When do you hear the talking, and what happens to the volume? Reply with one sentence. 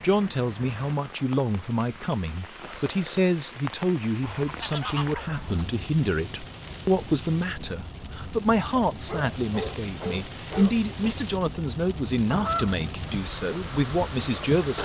The talking can be heard from 0.0 to 14.8 s, at a steady volume.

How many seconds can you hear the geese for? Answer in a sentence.
The geese can be heard for 2 seconds in total.